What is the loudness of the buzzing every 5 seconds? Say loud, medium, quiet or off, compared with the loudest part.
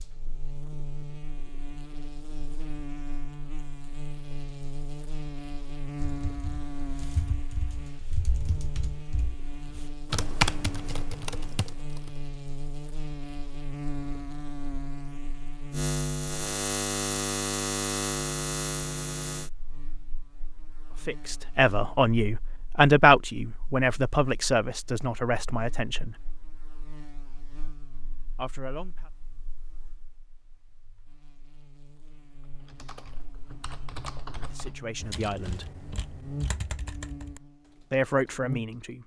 medium, medium, medium, loud, quiet, quiet, quiet, medium.